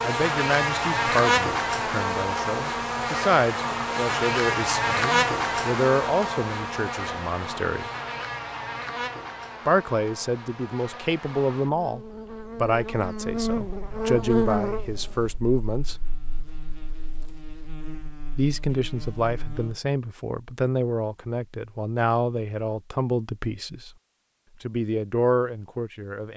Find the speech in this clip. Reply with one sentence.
You can hear the speech from 0.0 to 7.9 s, from 9.7 to 16.1 s, from 18.4 to 23.9 s and from 24.6 to 26.3 s.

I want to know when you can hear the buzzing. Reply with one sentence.
You can hear the buzzing from 0.0 to 19.8 s.